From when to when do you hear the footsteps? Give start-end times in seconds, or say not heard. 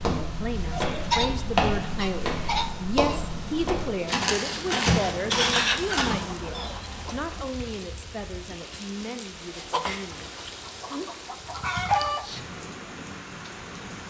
0.0-6.0.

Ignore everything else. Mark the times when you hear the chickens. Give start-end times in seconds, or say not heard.
0.8-3.0, 4.8-7.5, 9.7-12.2.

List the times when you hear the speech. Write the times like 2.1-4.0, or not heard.
0.2-10.3.